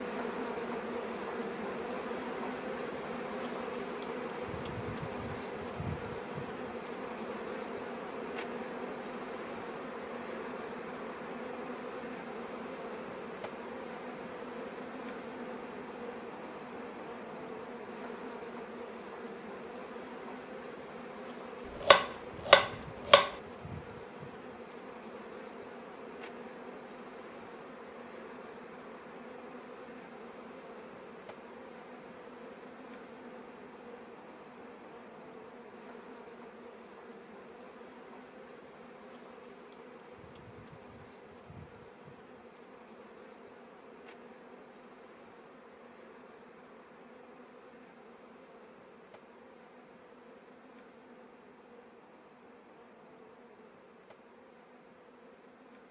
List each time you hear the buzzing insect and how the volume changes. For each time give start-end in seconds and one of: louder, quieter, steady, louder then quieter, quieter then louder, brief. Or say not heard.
0.0-55.8 quieter.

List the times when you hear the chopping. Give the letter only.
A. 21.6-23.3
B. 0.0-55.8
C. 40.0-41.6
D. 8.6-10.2
A.